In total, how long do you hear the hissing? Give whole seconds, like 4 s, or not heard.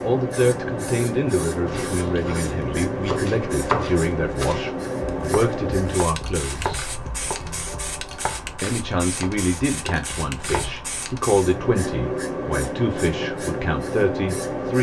15 s.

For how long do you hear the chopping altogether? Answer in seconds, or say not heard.
9 s.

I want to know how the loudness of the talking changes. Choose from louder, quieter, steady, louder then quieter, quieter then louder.
steady.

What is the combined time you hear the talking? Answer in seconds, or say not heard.
13 s.